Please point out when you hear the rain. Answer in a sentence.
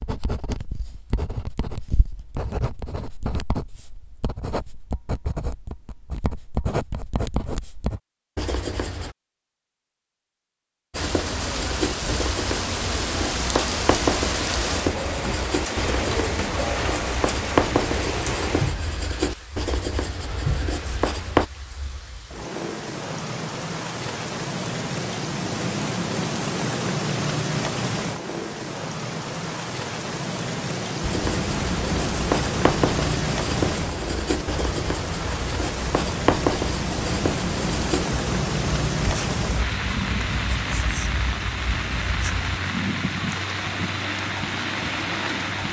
You can hear the rain from 10.9 to 45.6 s.